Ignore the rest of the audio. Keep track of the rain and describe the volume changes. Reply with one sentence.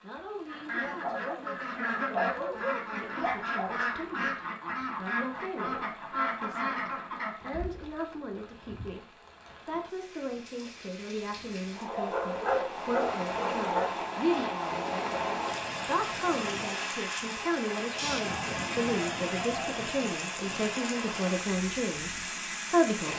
The loudness of the rain goes up.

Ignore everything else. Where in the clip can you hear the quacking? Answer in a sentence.
The quacking can be heard from 0.5 to 7.6 s.